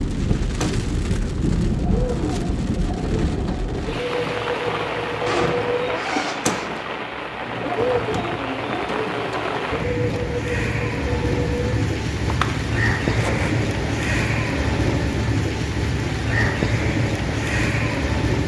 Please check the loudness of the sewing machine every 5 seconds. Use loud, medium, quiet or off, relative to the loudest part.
loud, loud, loud, medium.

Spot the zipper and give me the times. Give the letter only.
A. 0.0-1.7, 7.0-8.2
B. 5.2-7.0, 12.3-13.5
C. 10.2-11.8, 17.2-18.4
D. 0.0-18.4
B.